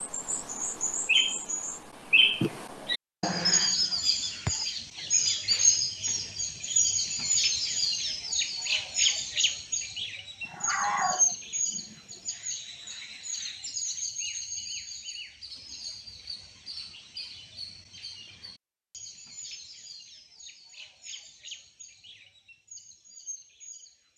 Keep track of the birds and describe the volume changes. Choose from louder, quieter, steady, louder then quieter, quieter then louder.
quieter.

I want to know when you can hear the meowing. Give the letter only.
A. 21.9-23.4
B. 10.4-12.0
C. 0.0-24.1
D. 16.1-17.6
B.